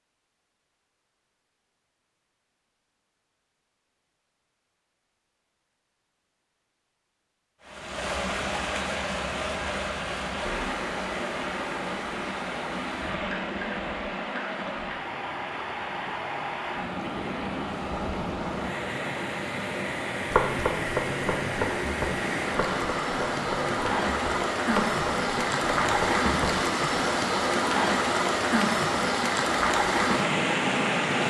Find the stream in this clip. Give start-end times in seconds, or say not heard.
7.6-31.2.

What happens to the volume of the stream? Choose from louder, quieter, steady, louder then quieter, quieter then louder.
louder.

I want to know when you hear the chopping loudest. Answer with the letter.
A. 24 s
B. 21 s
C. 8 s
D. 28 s
B.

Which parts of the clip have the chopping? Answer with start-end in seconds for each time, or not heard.
20.3-27.0.